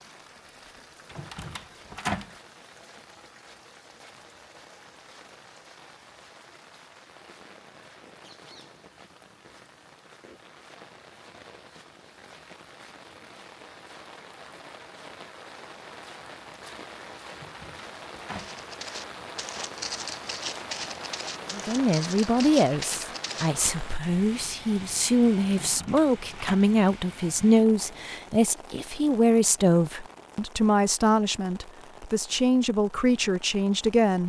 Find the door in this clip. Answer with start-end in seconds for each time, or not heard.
1.1-2.4, 17.3-18.6, 25.6-26.6.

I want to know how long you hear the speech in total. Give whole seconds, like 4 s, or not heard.
13 s.